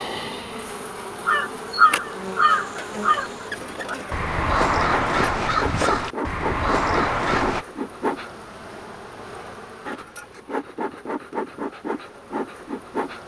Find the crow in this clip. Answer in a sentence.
You can hear the crow from 1.2 to 7.7 s.